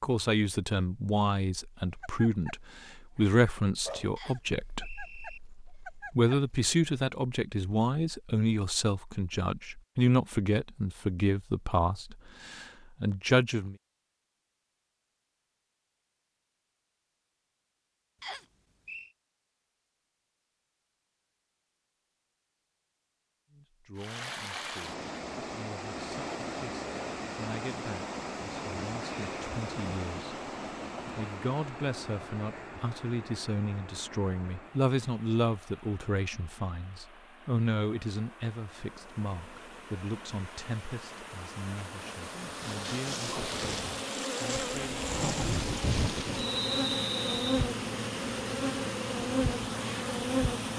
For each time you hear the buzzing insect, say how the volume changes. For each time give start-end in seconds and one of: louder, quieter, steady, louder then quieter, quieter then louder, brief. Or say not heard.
38.9-50.7 louder.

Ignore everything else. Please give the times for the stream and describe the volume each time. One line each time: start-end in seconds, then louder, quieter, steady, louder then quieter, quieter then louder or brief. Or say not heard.
23.9-50.7 quieter then louder.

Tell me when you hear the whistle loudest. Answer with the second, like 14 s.
47 s.